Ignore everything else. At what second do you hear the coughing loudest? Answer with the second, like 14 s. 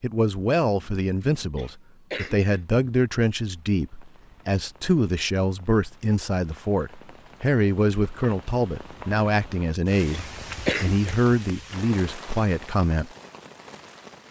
11 s.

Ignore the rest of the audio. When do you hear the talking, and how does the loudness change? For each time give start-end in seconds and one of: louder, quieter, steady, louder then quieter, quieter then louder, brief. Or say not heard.
0.0-13.1 steady.